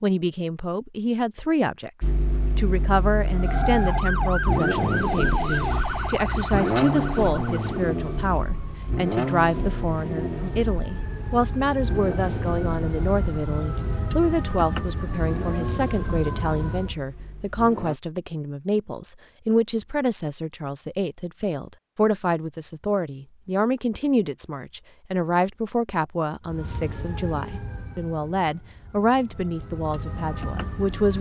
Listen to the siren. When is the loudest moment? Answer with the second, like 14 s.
4 s.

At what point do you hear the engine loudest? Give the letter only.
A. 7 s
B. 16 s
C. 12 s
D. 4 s
A.